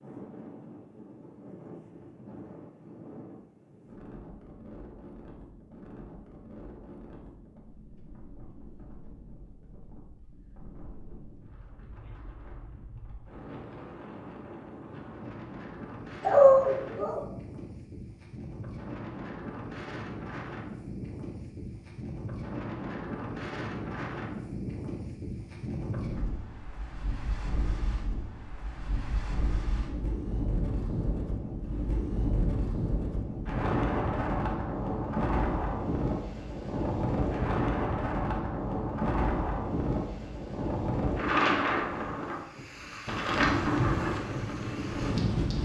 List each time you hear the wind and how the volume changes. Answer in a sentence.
The wind can be heard from 0.0 to 45.6 s, getting louder.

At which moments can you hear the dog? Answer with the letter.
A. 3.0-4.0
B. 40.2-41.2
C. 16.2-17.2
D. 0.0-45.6
C.